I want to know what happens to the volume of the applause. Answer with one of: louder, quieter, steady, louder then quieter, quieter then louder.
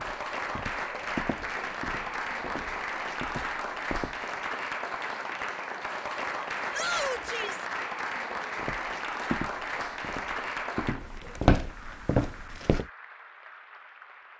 quieter.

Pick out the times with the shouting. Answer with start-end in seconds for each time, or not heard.
6.7-7.7.